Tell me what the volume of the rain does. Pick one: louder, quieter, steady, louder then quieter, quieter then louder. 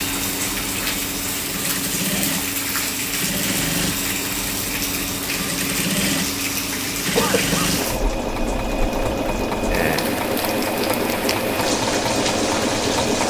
steady.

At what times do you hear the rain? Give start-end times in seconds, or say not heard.
0.0-13.2.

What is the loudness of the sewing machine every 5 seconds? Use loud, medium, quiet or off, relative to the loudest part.
medium, loud, loud.